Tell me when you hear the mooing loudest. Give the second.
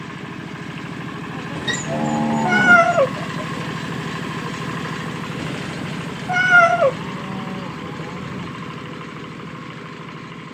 2 s.